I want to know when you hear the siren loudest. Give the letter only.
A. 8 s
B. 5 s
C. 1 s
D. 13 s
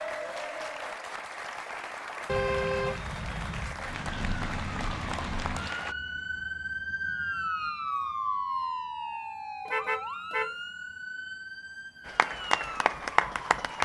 A.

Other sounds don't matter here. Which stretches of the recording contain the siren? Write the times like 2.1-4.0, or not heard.
3.7-13.8.